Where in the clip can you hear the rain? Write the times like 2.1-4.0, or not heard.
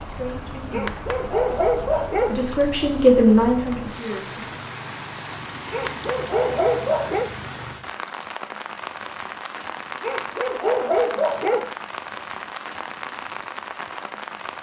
0.0-14.5.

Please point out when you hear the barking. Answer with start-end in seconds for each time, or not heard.
0.7-2.5, 5.7-7.3, 10.0-11.7.